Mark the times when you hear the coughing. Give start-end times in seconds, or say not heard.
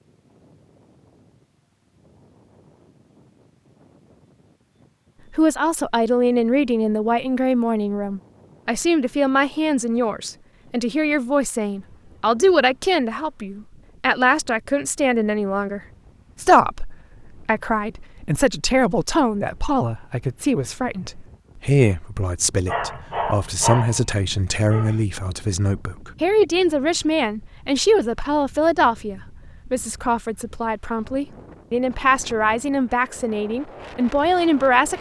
not heard.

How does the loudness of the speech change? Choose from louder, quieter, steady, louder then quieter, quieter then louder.
steady.